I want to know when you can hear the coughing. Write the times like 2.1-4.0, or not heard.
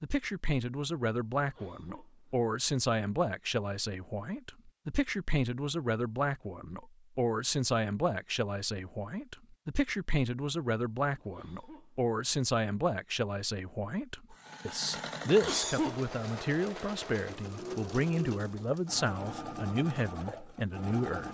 1.4-2.4, 11.2-12.1, 15.2-16.4.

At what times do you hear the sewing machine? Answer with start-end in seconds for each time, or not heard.
14.3-21.3.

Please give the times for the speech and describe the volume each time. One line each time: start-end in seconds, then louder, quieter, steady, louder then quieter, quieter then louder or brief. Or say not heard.
0.0-21.3 steady.